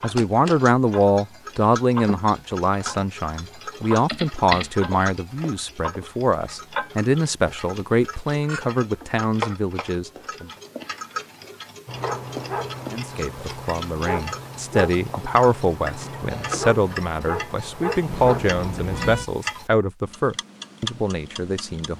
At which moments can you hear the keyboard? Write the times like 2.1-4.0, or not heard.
3.6-5.1.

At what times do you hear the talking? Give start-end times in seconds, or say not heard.
0.0-10.5, 12.9-21.9.